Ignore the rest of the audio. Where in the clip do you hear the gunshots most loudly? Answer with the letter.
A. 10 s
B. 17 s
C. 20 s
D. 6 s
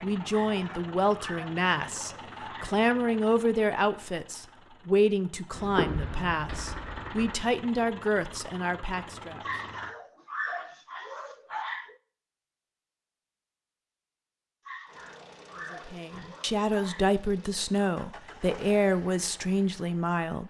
D.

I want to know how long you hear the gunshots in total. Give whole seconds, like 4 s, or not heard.
2 s.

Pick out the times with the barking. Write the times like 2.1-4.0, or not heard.
0.3-2.8, 9.4-11.9, 14.7-17.1.